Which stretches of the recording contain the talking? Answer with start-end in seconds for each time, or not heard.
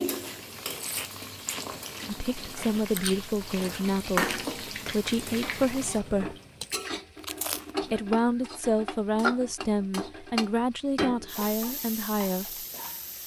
2.0-6.3, 7.9-12.7.